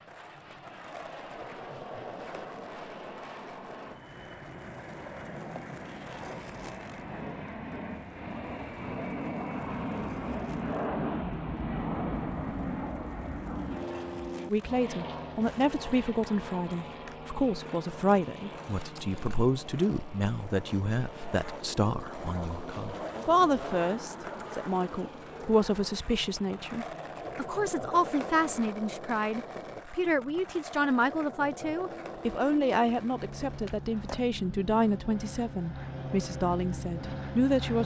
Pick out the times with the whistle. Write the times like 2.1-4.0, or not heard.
not heard.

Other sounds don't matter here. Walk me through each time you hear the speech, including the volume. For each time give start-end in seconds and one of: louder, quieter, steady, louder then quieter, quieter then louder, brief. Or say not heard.
14.4-37.8 steady.